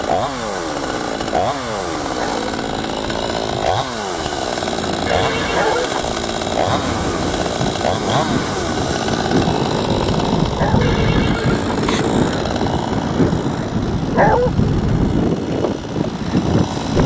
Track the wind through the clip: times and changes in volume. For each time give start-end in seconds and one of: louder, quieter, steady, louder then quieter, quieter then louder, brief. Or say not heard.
0.1-17.0 louder.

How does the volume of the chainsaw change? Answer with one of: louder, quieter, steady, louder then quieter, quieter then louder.
quieter.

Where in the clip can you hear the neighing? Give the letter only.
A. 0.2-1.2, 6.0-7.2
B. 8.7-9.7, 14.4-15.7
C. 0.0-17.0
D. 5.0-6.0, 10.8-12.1
D.